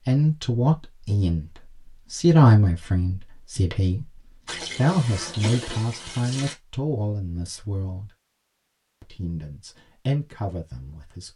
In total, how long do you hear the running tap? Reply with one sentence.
You can hear the running tap for 2 seconds altogether.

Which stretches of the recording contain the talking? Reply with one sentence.
The talking can be heard from 0.1 to 8.1 s and from 9.0 to 11.3 s.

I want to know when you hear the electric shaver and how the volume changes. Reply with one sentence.
The electric shaver can't be heard in this clip.